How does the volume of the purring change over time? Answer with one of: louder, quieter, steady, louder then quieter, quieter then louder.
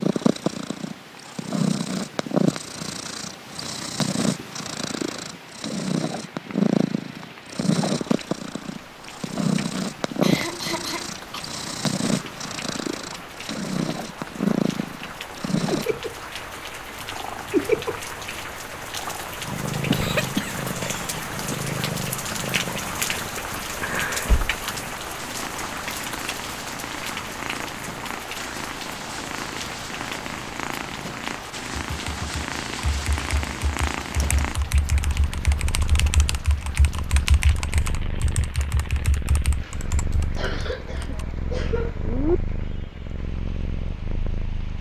quieter.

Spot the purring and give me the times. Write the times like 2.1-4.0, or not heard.
0.0-44.7.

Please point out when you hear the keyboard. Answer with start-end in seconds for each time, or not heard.
31.9-41.2.